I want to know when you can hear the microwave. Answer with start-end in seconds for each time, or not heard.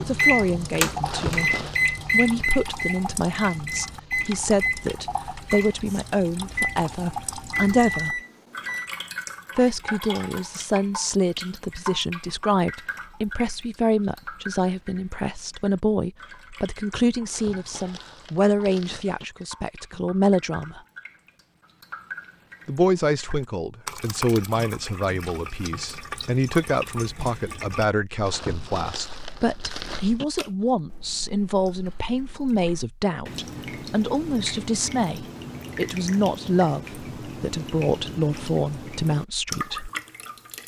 0.0-8.9.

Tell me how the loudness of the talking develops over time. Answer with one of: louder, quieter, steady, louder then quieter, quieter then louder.
steady.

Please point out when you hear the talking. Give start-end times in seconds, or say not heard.
0.1-8.2, 9.6-20.8, 22.6-39.9.